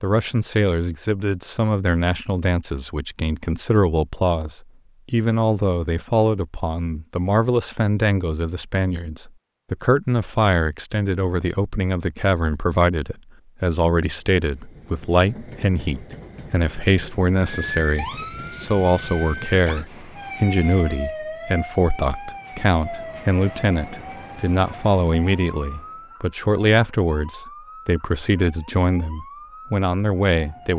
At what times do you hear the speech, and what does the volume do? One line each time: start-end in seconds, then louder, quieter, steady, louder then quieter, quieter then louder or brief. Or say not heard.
0.0-30.7 steady.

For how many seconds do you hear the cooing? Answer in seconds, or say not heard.
not heard.